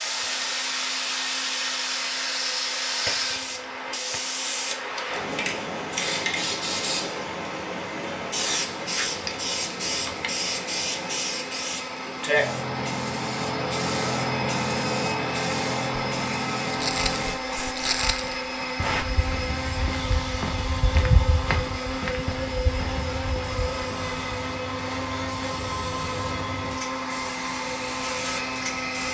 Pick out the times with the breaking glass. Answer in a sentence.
You can hear the breaking glass from 3.0 to 4.2 s.